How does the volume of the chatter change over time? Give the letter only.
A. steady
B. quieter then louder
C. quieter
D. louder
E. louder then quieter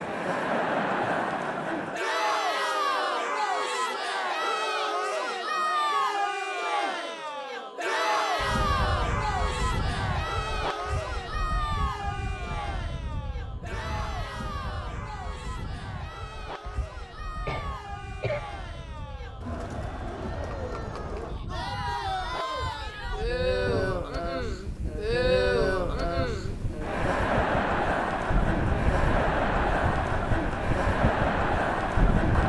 B.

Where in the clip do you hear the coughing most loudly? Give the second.
18 s.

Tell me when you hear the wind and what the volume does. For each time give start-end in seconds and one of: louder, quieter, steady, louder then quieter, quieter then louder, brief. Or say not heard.
8.3-32.4 quieter then louder.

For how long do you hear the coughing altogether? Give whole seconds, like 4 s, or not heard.
2 s.